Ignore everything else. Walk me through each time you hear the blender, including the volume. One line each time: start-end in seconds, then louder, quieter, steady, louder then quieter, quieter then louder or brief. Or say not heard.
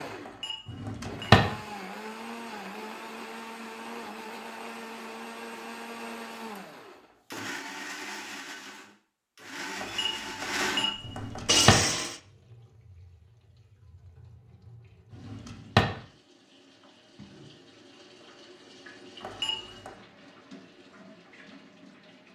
0.0-12.2 louder.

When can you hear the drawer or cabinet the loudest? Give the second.
1 s.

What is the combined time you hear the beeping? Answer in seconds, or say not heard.
4 s.